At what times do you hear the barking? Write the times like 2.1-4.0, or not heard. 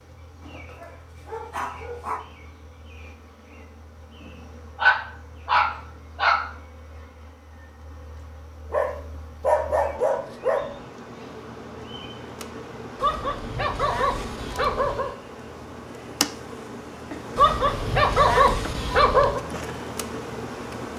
0.7-2.2, 4.8-6.5, 8.7-10.8, 13.0-15.2, 17.4-19.4.